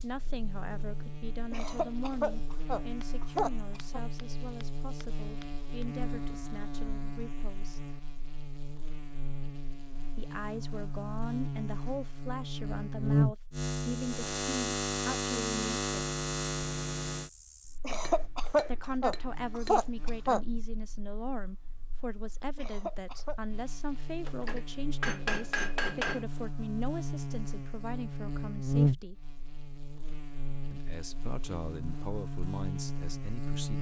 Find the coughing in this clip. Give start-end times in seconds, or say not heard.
1.5-4.0, 17.8-20.4, 22.6-23.4.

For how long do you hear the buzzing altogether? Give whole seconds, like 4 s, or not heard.
34 s.